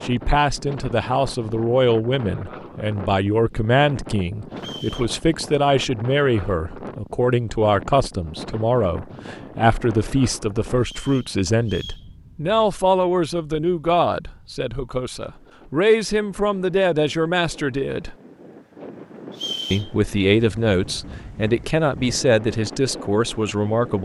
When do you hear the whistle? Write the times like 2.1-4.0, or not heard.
4.5-5.2, 10.8-12.1, 19.3-19.9.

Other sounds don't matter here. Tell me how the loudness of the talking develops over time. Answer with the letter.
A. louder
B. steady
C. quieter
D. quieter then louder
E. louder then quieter
B.